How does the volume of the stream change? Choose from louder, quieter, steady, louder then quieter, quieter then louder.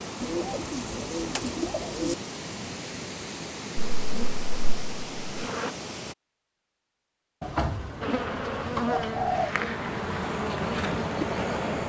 steady.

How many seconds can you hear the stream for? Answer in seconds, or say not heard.
6 s.